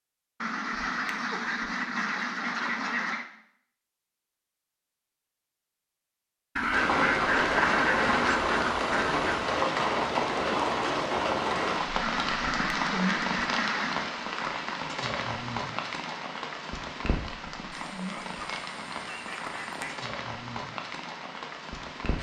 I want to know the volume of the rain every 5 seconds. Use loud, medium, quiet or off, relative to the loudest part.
off, loud, loud, medium, medium.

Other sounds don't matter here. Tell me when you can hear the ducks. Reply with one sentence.
The ducks can be heard from 0.4 to 3.2 s, from 6.5 to 9.5 s, from 12.0 to 14.1 s and from 17.7 to 20.0 s.